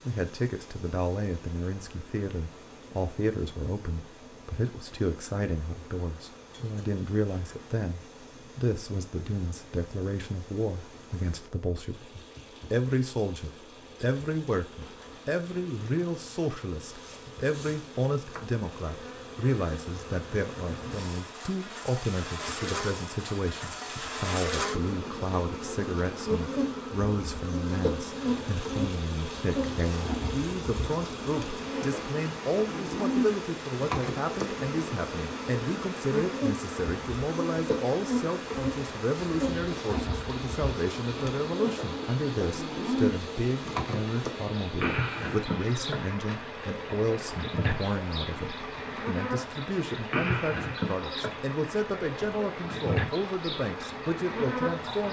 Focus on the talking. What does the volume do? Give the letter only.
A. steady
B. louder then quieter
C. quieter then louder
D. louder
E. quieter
A.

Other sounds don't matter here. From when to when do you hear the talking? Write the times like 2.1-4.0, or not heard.
0.1-55.0.